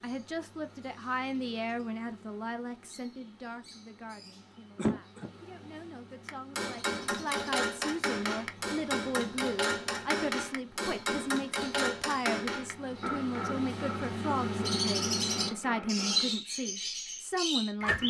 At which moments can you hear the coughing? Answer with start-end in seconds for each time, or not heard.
4.8-5.3.